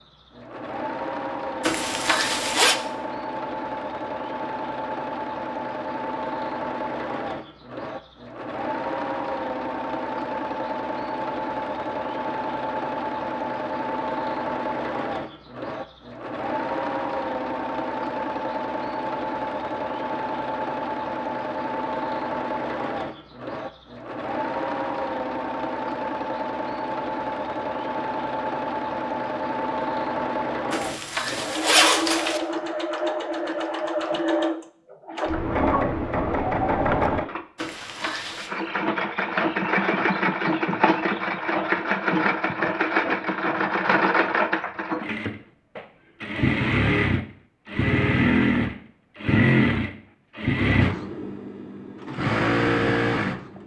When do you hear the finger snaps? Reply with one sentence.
The finger snaps can't be heard in this clip.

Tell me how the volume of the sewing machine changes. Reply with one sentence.
The volume of the sewing machine goes up.